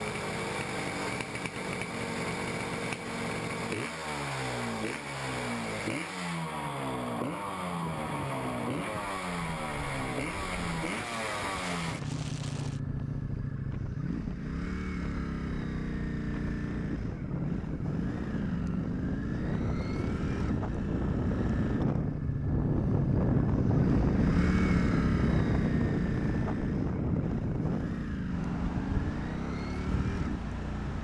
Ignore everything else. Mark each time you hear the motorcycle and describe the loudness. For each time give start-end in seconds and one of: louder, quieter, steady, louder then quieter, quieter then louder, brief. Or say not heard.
0.0-30.9 steady.